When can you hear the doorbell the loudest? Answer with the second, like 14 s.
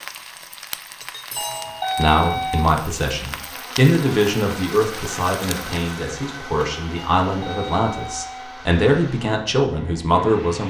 2 s.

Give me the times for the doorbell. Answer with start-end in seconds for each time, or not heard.
1.4-2.8, 7.0-8.7.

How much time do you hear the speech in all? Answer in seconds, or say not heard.
9 s.